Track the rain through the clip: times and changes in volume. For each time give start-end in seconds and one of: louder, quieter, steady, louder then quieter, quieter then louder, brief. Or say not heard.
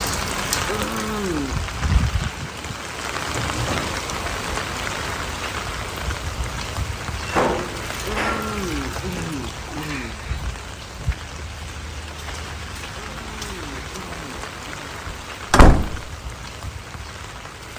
0.0-17.7 quieter.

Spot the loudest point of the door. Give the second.
16 s.